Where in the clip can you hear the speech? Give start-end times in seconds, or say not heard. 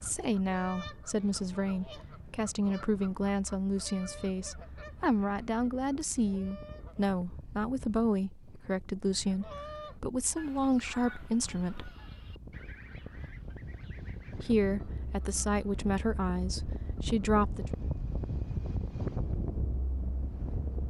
0.0-11.9, 14.3-17.6.